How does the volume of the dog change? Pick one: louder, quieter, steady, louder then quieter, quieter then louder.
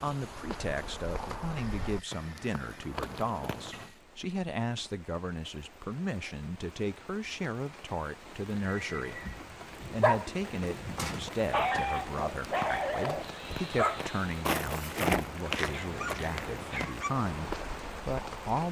quieter.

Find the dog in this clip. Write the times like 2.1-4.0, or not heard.
9.2-17.1.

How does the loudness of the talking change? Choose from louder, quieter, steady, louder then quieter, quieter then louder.
steady.